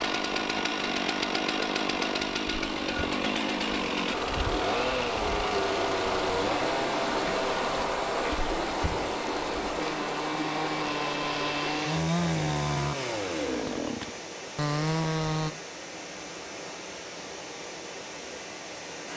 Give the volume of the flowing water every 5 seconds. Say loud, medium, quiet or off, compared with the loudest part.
medium, loud, medium, medium.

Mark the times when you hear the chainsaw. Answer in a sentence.
The chainsaw can be heard from 0.0 to 15.5 s.